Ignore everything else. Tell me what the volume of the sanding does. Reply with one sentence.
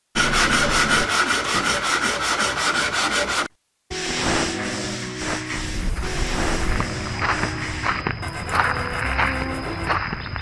The volume of the sanding goes down.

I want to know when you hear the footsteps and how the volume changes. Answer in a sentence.
The footsteps can be heard from 5.2 to 10.3 s, getting louder.